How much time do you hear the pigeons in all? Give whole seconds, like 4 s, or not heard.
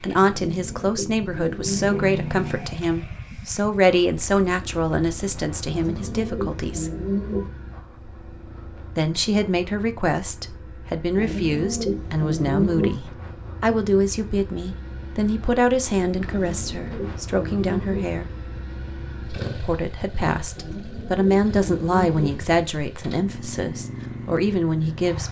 9 s.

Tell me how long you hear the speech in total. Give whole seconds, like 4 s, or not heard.
22 s.